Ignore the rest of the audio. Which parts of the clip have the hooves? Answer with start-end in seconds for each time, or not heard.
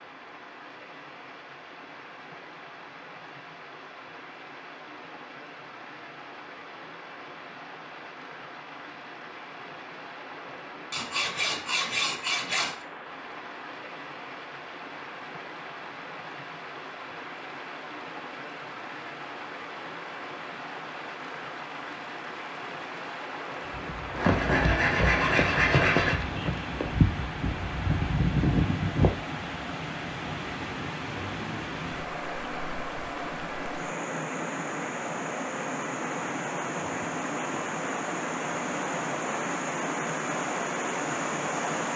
23.7-29.1.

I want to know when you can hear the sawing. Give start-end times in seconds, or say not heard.
10.9-12.8, 24.2-26.1.